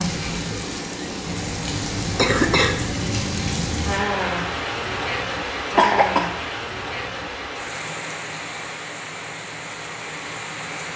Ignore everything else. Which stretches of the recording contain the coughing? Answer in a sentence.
You can hear the coughing from 2.1 to 2.9 s and from 5.8 to 6.5 s.